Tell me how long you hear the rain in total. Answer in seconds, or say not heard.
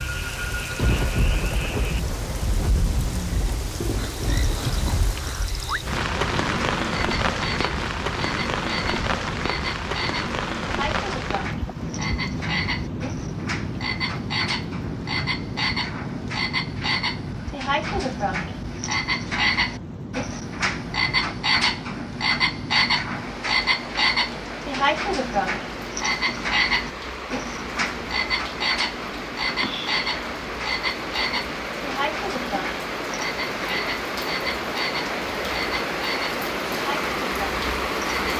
38 s.